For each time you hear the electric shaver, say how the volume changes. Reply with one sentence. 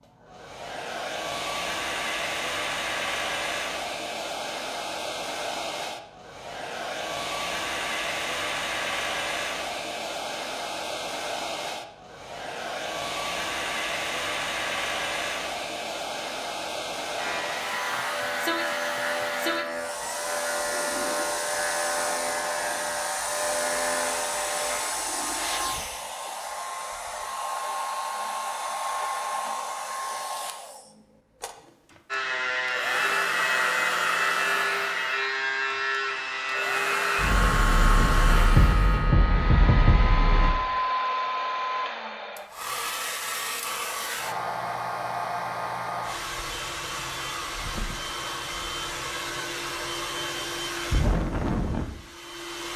The electric shaver can be heard from 17.1 to 24.8 s, at a steady volume; and from 32.1 to 40.5 s, at a steady volume.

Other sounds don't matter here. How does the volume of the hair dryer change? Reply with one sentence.
The loudness of the hair dryer stays about the same.